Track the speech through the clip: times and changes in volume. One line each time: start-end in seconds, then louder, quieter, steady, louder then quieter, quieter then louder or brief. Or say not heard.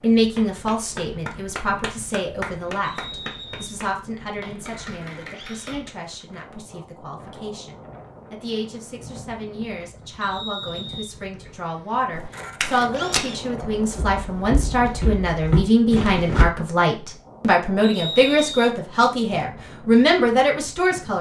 0.0-21.1 quieter then louder.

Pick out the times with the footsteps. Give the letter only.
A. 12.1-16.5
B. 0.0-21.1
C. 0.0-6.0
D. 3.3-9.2
A.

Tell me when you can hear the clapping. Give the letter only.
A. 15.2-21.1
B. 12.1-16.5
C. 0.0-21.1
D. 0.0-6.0
D.